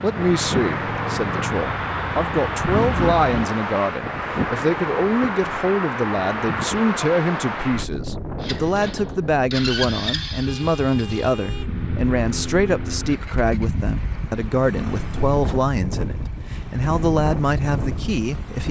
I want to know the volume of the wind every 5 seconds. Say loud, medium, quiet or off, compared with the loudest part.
loud, loud, medium, medium.